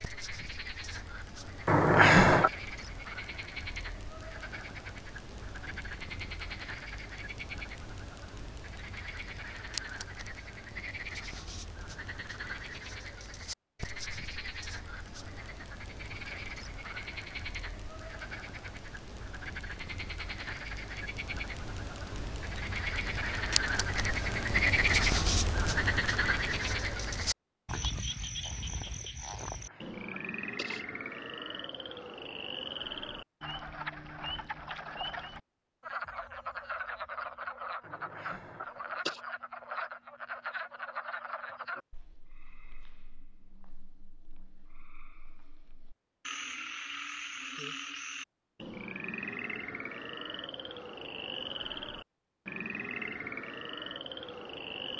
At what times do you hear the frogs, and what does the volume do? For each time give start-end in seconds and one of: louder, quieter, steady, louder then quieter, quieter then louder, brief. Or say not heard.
0.0-54.9 louder then quieter.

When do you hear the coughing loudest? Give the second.
2 s.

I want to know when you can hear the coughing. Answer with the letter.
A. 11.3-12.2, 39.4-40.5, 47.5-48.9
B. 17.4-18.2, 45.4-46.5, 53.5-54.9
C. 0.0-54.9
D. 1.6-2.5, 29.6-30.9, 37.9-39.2
D.